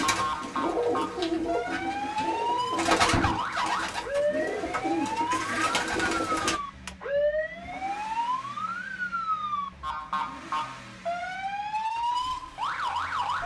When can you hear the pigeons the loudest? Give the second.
3 s.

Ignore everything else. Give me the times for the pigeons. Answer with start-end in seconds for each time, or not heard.
0.0-6.6.